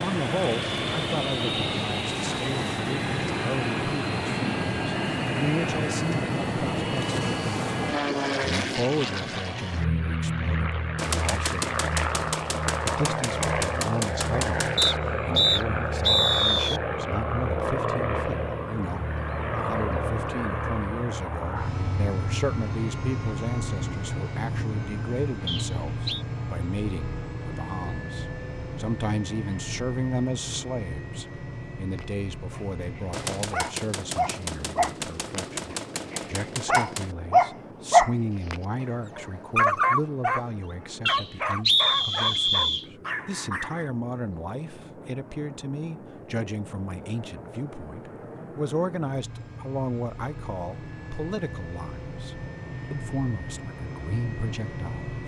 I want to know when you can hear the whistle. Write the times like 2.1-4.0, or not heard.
14.8-16.8, 25.4-26.2, 41.0-42.9.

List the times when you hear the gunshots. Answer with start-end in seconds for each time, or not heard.
10.9-15.0, 33.1-37.1.